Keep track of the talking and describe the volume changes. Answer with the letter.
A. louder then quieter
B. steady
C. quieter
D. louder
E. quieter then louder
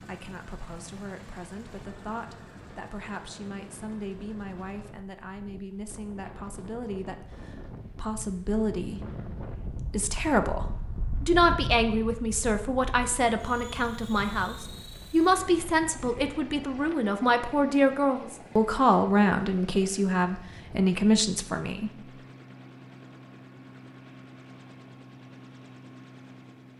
D.